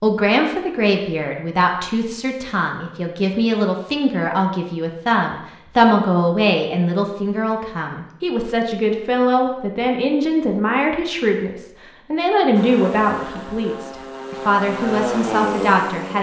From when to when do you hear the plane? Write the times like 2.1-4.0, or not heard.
12.6-16.1.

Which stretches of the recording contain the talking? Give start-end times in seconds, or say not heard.
0.0-16.1.